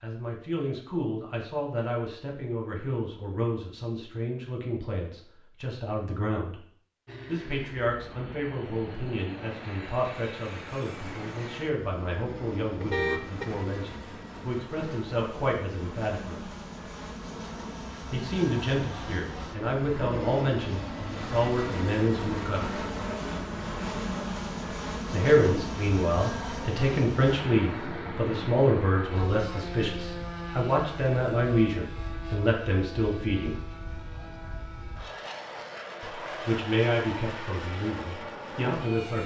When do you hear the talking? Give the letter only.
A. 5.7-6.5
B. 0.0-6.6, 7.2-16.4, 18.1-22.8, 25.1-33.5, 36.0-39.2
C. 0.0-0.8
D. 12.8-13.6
B.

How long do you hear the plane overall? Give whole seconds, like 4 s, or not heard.
32 s.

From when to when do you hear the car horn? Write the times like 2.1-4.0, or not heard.
12.8-13.6.